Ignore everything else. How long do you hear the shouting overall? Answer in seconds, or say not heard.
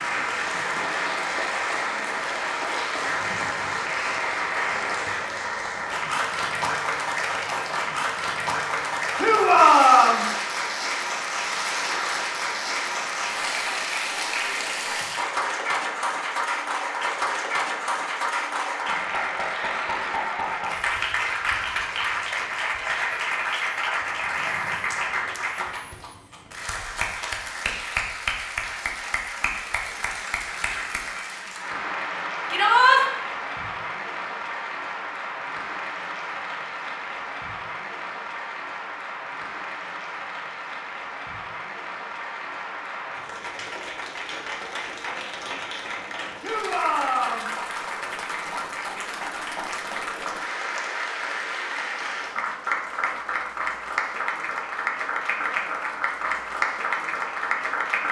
3 s.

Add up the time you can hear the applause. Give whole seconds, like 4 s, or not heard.
58 s.